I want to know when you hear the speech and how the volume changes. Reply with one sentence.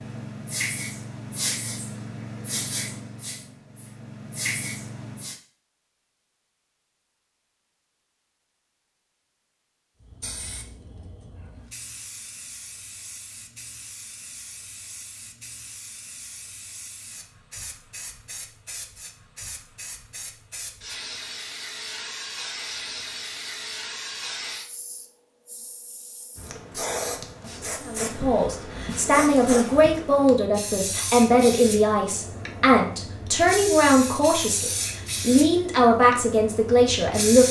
The speech can be heard from 27.9 to 37.4 s, at a steady volume.